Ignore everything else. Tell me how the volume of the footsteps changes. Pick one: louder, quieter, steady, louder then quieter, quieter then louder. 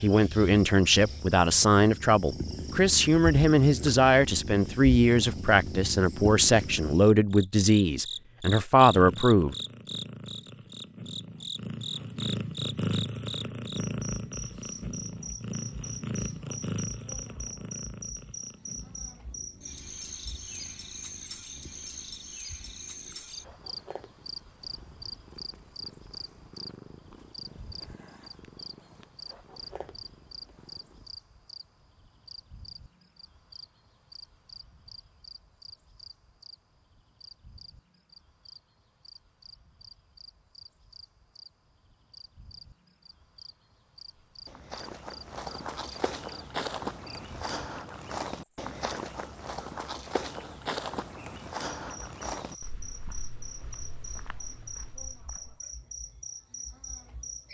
quieter.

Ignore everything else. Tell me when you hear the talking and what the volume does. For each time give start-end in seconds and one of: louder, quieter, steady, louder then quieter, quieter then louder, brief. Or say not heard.
0.0-9.6 steady.